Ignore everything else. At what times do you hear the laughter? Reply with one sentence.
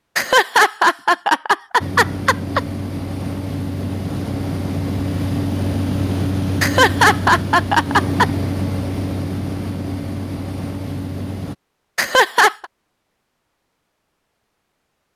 You can hear the laughter from 0.1 to 2.6 s, from 6.6 to 8.2 s and from 11.9 to 12.7 s.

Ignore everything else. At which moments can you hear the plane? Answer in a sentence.
The plane can be heard from 1.8 to 11.6 s.